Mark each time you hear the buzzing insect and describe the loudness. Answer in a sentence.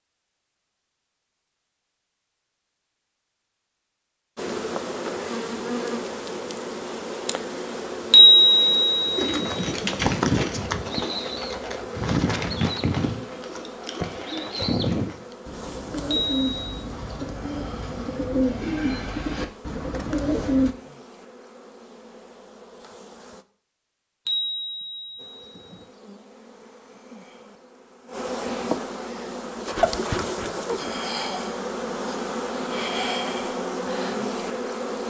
The buzzing insect can be heard from 4.3 to 23.4 s, getting quieter; and from 25.1 to 35.0 s, getting louder.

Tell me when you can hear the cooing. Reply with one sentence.
You can hear the cooing from 9.2 to 20.8 s.